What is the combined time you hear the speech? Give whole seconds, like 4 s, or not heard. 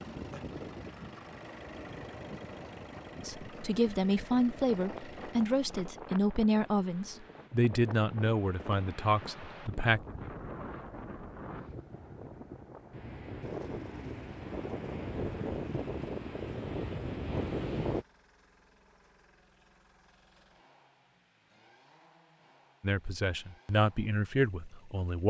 9 s.